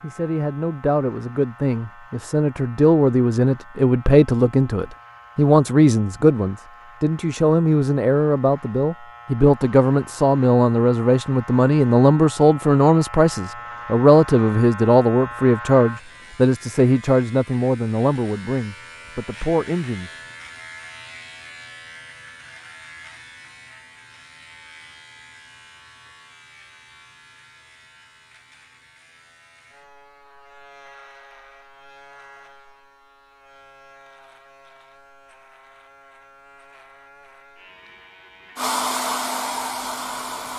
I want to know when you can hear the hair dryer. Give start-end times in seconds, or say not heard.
38.5-40.5.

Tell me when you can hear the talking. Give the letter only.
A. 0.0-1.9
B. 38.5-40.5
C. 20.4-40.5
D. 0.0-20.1
D.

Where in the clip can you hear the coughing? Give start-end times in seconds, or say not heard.
not heard.